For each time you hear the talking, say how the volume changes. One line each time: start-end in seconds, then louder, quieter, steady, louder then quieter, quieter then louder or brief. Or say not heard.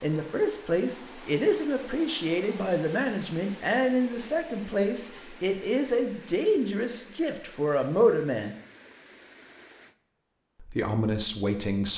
0.0-8.6 steady
10.6-11.9 brief.